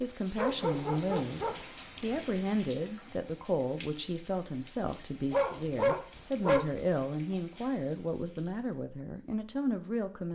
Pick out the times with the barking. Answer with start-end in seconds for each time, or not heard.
0.3-1.6, 5.3-6.7.